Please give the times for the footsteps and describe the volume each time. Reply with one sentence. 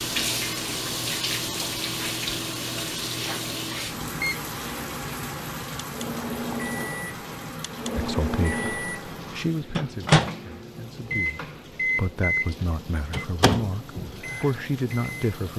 You can't hear the footsteps here.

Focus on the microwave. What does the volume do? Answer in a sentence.
The volume of the microwave goes up.